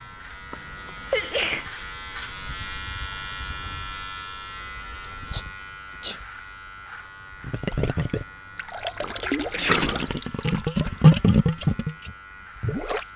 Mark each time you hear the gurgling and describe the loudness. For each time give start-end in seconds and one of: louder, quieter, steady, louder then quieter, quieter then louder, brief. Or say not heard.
7.4-13.1 louder then quieter.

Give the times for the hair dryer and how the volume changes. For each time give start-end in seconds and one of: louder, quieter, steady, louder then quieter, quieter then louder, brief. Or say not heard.
not heard.